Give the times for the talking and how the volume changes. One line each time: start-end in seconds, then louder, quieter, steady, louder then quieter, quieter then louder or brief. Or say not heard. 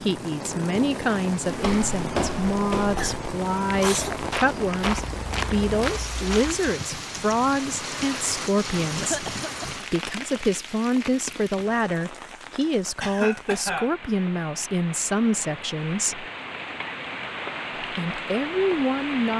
0.0-16.2 steady
17.8-19.3 brief.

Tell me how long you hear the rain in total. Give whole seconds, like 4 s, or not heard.
19 s.